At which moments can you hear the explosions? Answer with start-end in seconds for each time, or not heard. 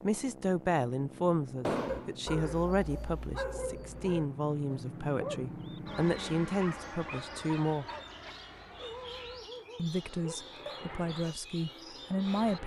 1.6-2.1.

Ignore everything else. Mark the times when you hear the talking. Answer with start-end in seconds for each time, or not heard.
0.0-7.8, 9.8-12.6.